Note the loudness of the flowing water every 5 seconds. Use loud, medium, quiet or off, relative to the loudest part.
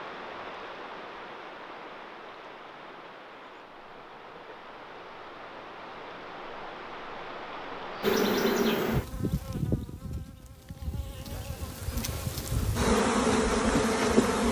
loud, loud, off.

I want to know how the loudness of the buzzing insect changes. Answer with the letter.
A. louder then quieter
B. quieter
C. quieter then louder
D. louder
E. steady
C.